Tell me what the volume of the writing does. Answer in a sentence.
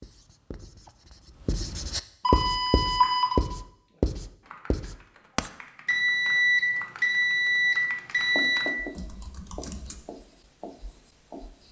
The volume of the writing goes up, then down.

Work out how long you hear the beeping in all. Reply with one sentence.
You can hear the beeping for 4 seconds altogether.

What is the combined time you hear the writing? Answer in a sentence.
You can hear the writing for 9 seconds altogether.